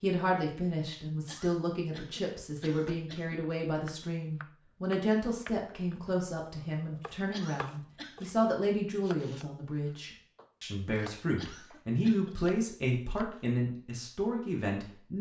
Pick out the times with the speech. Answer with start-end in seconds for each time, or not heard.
0.0-15.1.